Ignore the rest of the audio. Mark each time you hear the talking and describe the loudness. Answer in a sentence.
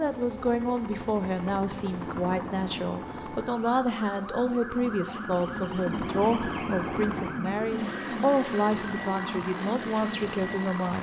The talking can be heard from 0.0 to 10.9 s, at a steady volume.